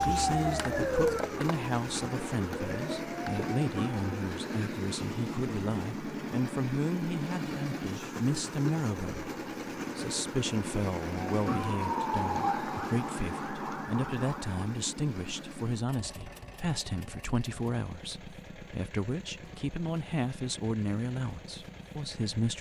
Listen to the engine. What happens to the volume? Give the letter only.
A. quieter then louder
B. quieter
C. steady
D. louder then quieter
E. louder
B.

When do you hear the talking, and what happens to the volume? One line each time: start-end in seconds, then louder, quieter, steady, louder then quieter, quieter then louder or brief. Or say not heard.
0.1-22.5 steady.